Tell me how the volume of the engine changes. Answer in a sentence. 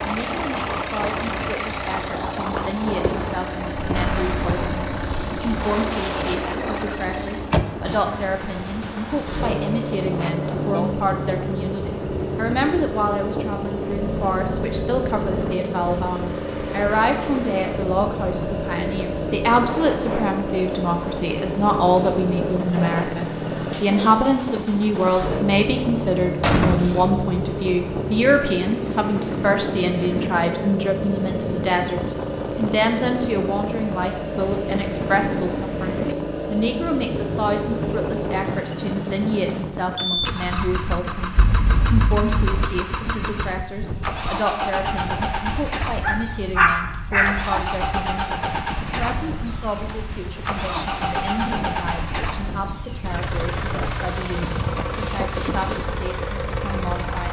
The loudness of the engine stays about the same.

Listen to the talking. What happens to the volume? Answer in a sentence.
The loudness of the talking goes up, then down.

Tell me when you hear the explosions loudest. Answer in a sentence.
The loudest moment of the explosions is at 27 seconds.